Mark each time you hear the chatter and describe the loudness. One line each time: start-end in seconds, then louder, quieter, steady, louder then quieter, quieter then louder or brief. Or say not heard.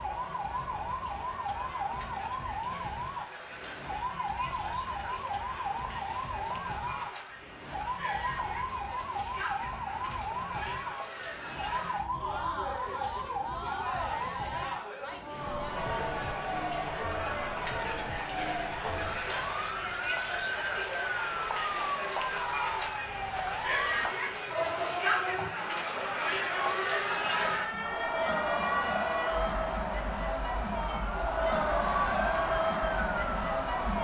0.0-33.9 louder.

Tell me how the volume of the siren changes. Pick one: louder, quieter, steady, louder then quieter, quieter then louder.
steady.